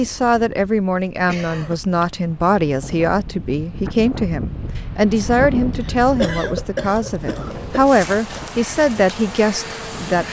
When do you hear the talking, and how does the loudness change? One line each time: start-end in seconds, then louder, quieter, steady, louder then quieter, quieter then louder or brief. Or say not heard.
0.0-10.2 steady.